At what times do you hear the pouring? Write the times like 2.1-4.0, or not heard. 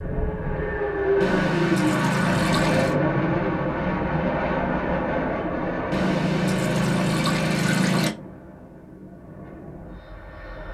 1.2-3.0, 5.9-8.2.